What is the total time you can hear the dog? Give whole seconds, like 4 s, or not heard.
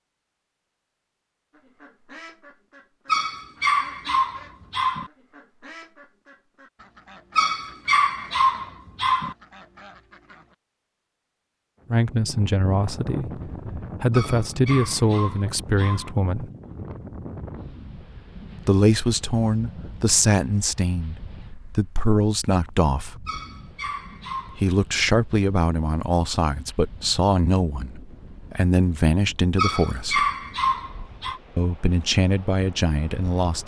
9 s.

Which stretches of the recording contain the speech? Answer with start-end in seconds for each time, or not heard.
11.9-16.5, 18.6-23.1, 24.6-30.3, 31.6-33.6.